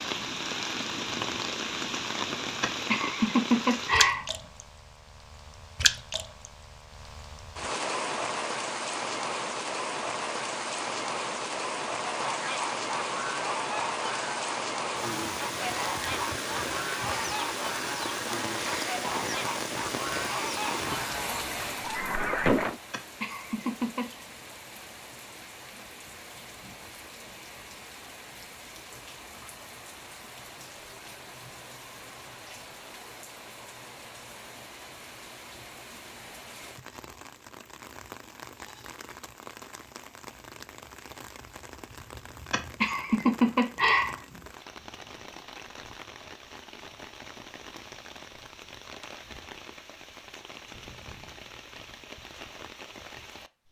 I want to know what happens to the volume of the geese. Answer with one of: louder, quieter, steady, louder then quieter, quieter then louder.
steady.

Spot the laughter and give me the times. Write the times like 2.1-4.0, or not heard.
2.6-4.2, 22.9-24.1, 42.5-44.4.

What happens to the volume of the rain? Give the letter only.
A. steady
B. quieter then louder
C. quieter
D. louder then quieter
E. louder
C.